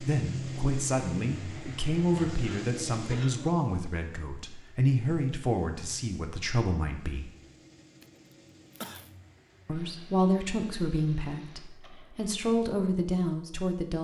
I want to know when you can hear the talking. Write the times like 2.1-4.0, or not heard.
0.0-7.3, 9.7-13.9.